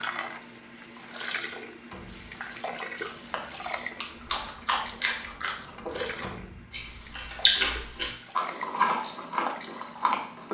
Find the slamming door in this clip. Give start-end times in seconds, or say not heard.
1.4-2.4, 5.8-6.8.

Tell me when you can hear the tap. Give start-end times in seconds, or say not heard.
0.0-10.4.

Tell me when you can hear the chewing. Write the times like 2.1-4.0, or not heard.
3.0-10.4.